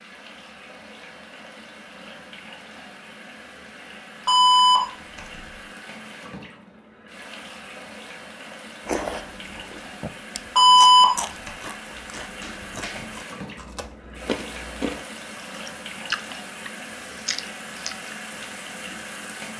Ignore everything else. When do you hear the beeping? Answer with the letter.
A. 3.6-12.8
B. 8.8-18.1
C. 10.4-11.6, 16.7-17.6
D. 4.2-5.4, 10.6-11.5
D.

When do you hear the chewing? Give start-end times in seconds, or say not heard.
8.8-18.1.